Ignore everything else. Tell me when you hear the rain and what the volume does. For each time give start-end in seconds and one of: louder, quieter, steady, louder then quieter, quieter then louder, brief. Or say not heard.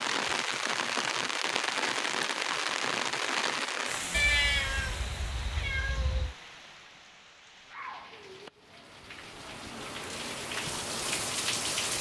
0.0-11.9 quieter then louder.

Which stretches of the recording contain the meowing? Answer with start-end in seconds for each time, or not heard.
4.1-6.3.